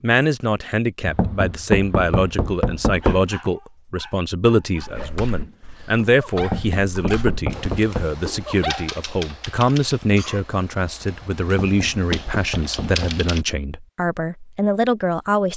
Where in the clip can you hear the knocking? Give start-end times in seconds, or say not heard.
1.1-3.3, 6.4-8.1, 11.4-13.1.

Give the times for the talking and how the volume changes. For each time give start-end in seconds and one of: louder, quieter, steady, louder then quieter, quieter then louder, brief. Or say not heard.
0.0-15.5 steady.